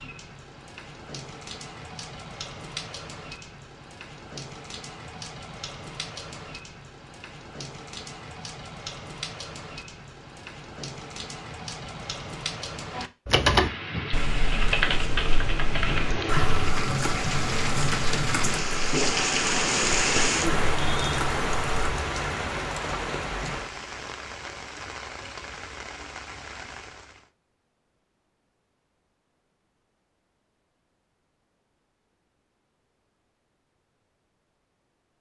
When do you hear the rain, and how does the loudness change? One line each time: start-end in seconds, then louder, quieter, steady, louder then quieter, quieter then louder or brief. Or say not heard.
0.0-27.2 louder then quieter.